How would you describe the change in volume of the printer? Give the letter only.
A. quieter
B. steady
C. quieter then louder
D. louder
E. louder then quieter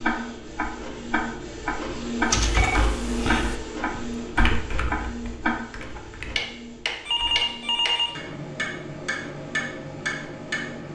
A.